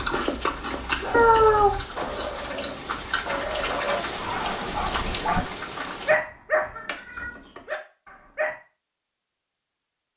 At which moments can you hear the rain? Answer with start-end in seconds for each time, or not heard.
0.0-6.2.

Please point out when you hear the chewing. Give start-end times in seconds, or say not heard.
0.0-3.9.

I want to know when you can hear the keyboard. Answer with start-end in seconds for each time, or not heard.
not heard.